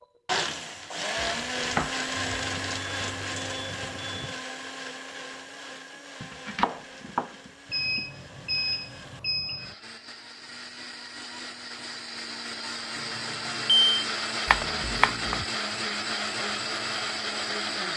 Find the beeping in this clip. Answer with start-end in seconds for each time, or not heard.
2.1-4.4, 7.7-9.8, 12.9-13.9.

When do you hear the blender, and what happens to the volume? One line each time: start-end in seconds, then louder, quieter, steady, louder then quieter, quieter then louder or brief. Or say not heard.
0.0-17.9 quieter then louder.